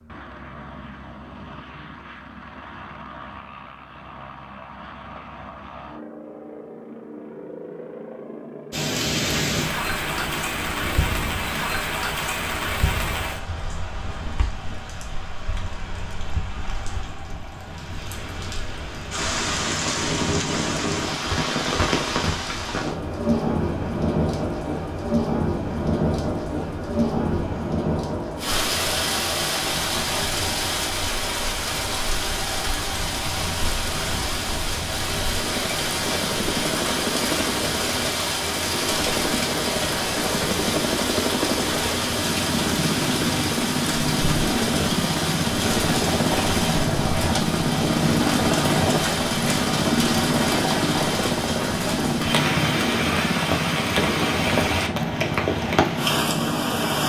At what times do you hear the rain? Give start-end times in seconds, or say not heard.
8.7-57.0.